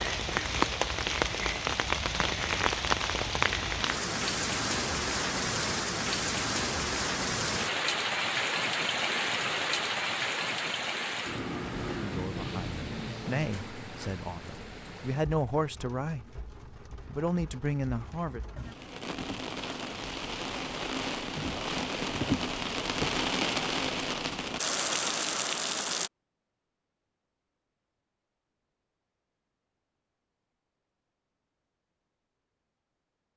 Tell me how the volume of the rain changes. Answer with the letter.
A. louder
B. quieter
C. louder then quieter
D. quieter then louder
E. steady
D.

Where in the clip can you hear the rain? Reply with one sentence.
You can hear the rain from 0.0 to 26.1 s.